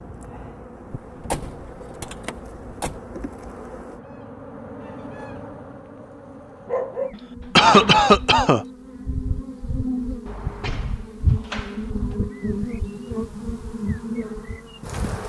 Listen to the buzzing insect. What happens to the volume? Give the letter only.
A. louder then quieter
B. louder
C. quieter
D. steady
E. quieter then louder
B.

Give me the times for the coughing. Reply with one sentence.
The coughing can be heard from 7.5 to 8.7 s.